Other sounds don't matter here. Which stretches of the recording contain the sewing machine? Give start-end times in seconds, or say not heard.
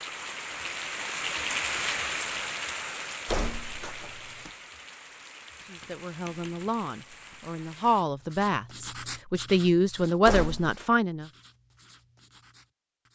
not heard.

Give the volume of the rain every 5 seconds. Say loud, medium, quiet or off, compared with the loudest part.
loud, quiet, off.